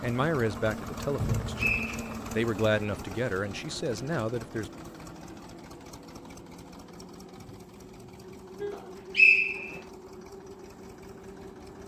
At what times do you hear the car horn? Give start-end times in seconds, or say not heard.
1.1-1.9, 7.3-8.8.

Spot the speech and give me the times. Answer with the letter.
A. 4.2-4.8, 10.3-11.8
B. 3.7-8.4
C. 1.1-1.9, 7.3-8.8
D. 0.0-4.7
D.